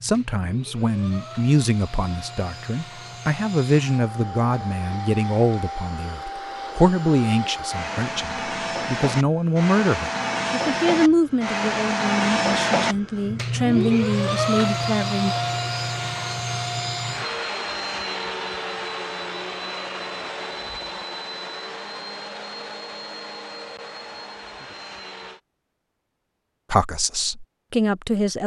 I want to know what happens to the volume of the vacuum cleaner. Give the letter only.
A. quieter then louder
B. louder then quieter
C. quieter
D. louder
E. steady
B.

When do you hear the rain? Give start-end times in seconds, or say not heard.
not heard.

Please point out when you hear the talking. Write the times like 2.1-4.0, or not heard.
0.0-15.3, 26.7-28.4.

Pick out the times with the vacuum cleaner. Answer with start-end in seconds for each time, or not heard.
0.0-25.4.